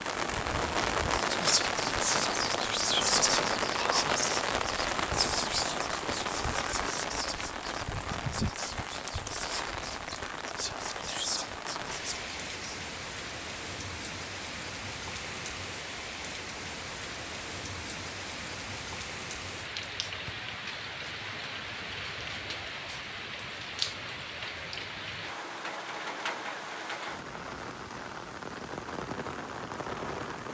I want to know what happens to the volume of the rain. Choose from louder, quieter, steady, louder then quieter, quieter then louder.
quieter.